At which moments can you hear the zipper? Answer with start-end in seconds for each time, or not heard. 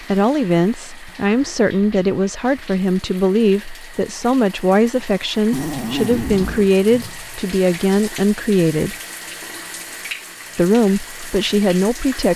5.5-6.7.